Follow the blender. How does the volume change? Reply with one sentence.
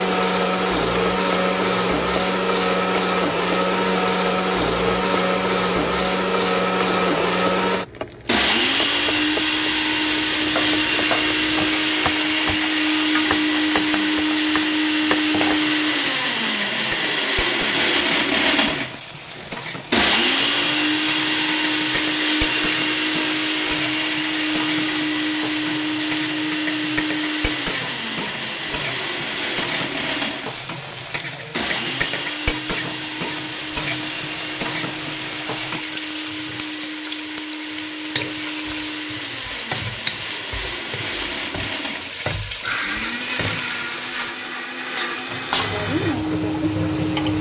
The volume of the blender goes down.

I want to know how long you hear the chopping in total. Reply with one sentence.
You can hear the chopping for 5 seconds altogether.